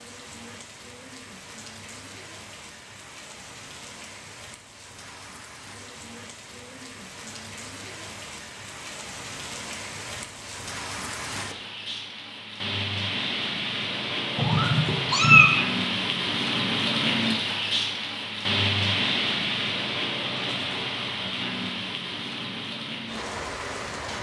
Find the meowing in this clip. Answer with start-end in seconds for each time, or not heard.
14.3-15.6.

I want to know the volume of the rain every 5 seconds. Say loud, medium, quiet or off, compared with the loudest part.
quiet, quiet, medium, loud, medium.